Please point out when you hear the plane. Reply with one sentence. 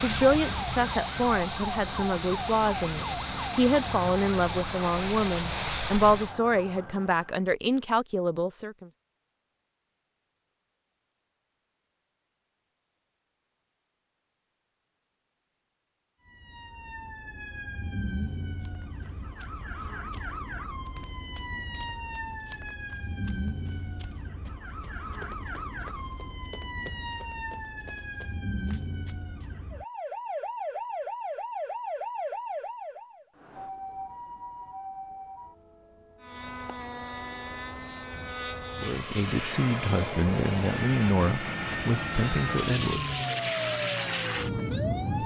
The plane can be heard from 0.0 to 6.3 s and from 36.2 to 45.2 s.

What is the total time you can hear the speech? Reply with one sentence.
The speech can be heard for 13 seconds in total.